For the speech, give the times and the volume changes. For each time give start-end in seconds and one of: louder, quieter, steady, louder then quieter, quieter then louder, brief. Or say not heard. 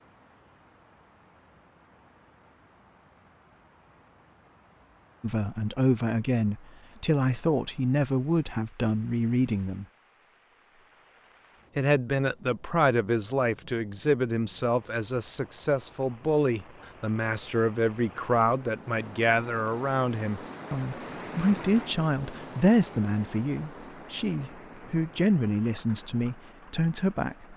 5.2-9.8 steady
11.8-27.5 steady.